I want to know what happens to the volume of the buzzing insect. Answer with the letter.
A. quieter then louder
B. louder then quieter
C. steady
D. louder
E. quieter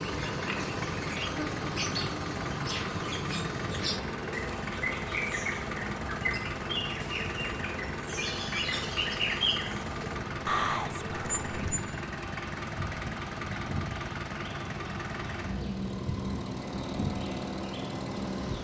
C.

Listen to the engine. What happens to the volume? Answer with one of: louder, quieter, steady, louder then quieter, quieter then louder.
steady.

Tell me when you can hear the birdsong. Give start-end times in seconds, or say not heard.
0.0-11.8.